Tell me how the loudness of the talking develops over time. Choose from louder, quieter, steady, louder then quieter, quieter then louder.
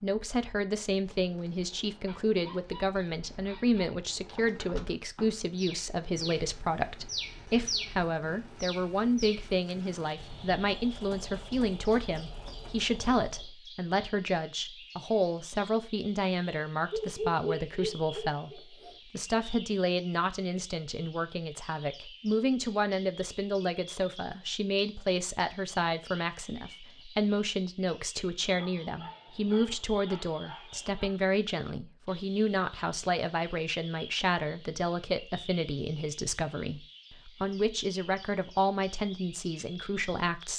steady.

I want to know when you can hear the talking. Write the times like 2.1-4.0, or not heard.
0.0-40.5.